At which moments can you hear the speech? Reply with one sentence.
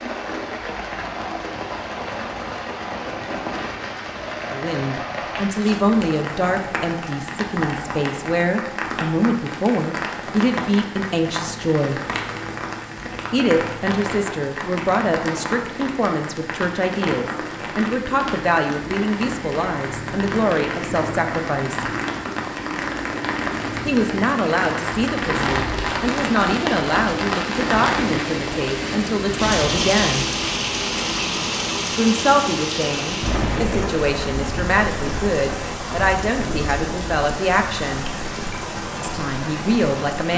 You can hear the speech from 4.5 to 12.0 s, from 13.3 to 21.9 s, from 23.9 to 30.2 s, from 31.9 to 38.0 s and from 39.0 to 40.3 s.